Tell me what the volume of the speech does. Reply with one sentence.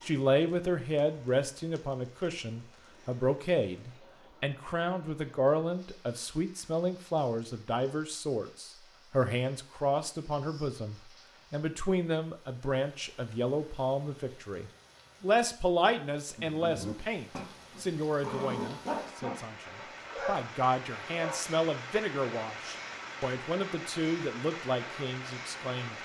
The loudness of the speech stays about the same.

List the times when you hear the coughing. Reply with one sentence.
You can't hear the coughing here.